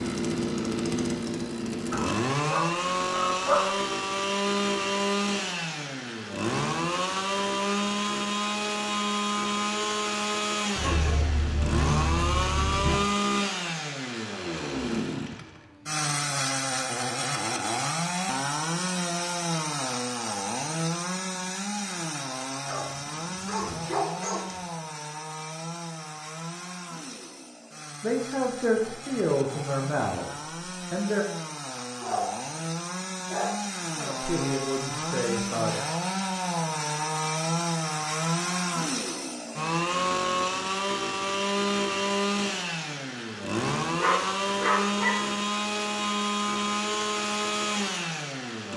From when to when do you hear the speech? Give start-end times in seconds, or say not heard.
28.0-31.2, 34.0-35.8.